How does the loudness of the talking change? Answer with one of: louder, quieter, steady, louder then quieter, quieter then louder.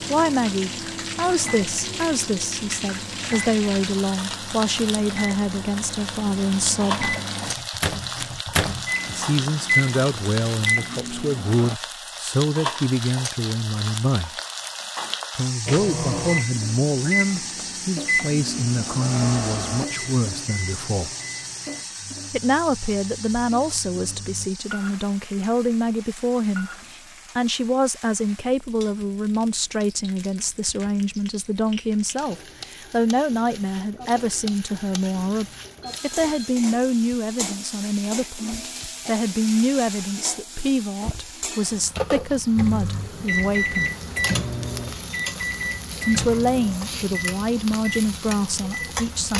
steady.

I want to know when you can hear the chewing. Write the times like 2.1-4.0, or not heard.
not heard.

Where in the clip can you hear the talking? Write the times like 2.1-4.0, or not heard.
0.1-7.1, 9.1-14.3, 15.3-21.1, 22.3-43.9, 46.0-49.3.